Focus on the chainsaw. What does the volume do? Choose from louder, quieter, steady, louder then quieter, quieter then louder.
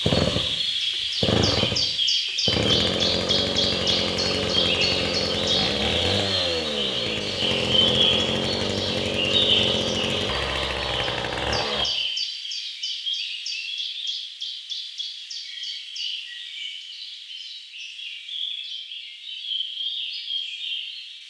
steady.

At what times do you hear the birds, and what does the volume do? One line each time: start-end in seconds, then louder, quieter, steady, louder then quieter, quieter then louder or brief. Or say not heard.
0.0-21.2 quieter.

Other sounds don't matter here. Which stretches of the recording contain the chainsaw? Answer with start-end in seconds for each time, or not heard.
0.0-11.9.